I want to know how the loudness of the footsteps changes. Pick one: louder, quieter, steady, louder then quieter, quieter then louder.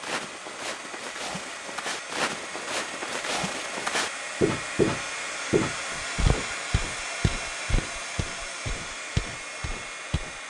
louder then quieter.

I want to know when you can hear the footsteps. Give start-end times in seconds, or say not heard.
0.0-10.4.